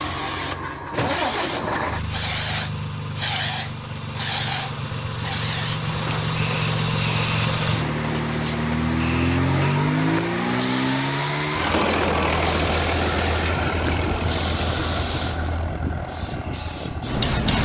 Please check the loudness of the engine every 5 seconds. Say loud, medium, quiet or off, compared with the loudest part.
medium, loud, loud, medium.